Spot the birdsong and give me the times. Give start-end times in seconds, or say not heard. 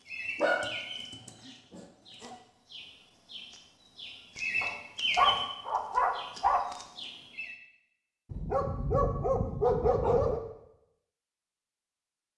0.1-7.5.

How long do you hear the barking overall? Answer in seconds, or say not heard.
6 s.